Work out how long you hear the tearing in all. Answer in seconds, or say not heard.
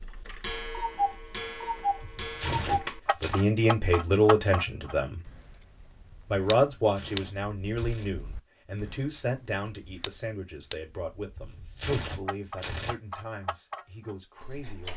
4 s.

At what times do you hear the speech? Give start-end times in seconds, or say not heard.
2.6-5.2, 6.2-14.9.